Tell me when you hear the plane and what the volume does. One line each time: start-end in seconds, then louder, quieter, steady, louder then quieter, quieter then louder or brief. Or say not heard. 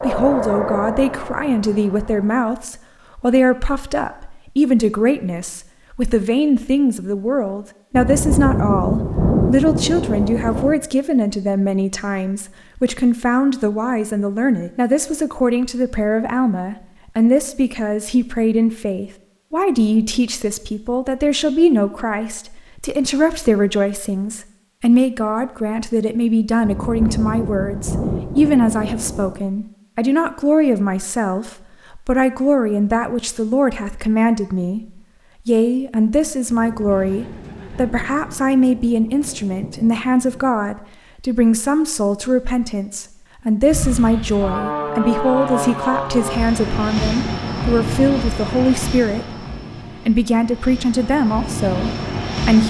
0.0-2.3 brief
43.6-52.6 quieter then louder.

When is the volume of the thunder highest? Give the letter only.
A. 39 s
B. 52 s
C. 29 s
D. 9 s
D.